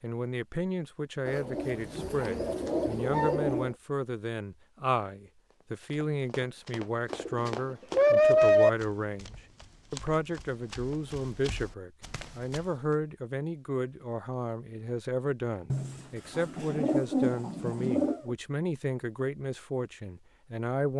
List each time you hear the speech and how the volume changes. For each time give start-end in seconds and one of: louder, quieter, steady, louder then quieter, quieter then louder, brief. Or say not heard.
0.0-20.9 steady.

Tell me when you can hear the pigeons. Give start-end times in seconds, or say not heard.
1.2-3.8, 7.1-8.7, 15.7-18.4.